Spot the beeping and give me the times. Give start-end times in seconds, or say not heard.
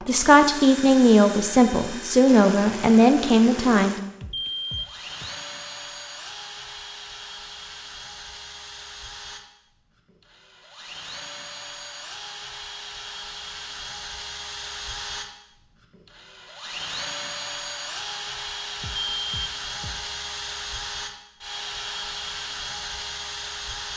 4.2-5.3, 18.8-20.0.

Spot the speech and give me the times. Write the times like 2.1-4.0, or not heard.
0.1-4.0.